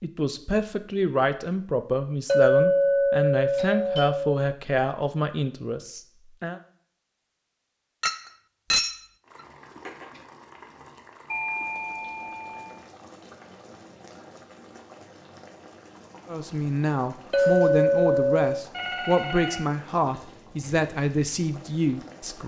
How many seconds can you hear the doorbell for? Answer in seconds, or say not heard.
3 s.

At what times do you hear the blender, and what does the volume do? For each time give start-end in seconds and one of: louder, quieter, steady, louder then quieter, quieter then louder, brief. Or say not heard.
not heard.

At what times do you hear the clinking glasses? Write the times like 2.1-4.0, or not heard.
2.2-4.5, 8.0-9.0, 17.3-18.6.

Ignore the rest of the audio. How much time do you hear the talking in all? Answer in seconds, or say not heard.
13 s.